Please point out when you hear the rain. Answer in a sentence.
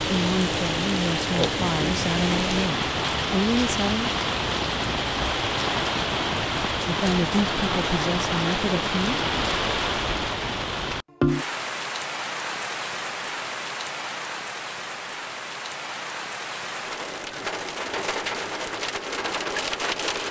You can hear the rain from 0.0 to 20.2 s.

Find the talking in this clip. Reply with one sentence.
You can hear the talking from 0.0 to 4.2 s and from 6.8 to 9.2 s.